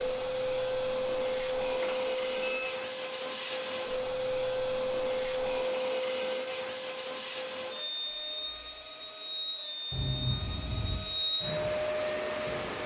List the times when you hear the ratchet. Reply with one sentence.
You can't hear the ratchet here.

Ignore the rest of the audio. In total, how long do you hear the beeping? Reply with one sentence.
The beeping can be heard for 2 seconds in total.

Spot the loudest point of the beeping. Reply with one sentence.
The loudest moment of the beeping is at 10 seconds.